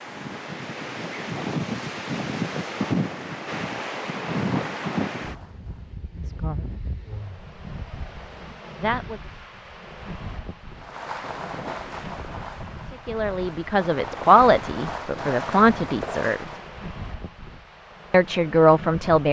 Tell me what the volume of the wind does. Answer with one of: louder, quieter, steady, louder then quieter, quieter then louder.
quieter.